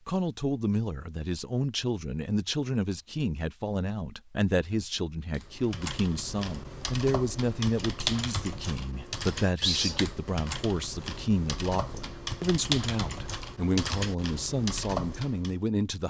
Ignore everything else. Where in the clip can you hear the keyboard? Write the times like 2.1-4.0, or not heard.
5.3-15.6.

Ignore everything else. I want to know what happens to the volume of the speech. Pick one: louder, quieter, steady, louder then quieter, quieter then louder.
steady.